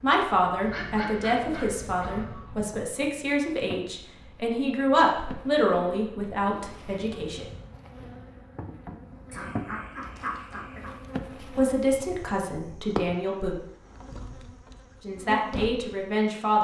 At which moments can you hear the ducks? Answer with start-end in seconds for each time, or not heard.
0.6-2.6, 9.3-10.9.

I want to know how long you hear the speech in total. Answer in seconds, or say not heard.
11 s.